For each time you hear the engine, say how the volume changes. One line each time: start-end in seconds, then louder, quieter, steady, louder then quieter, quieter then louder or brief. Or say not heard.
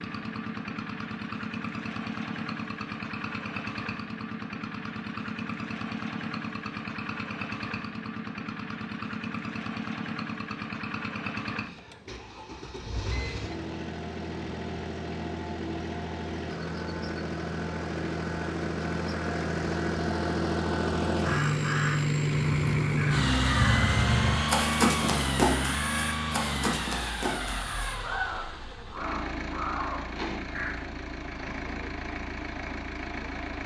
0.0-33.6 louder then quieter.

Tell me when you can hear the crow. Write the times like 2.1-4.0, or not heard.
21.2-30.9.